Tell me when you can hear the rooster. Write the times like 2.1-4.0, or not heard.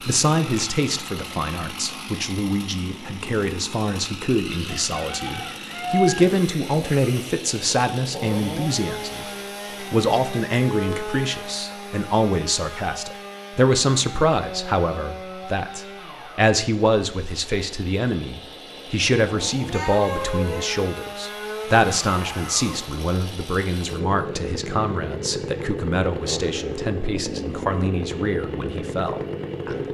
4.7-6.3.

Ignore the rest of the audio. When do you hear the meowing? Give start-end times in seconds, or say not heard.
19.7-20.7.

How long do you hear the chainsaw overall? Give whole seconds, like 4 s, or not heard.
30 s.